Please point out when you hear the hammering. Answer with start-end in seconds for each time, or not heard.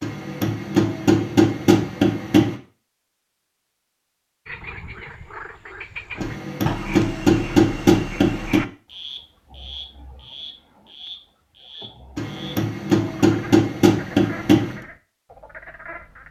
0.0-2.5, 6.2-8.7, 12.2-14.8.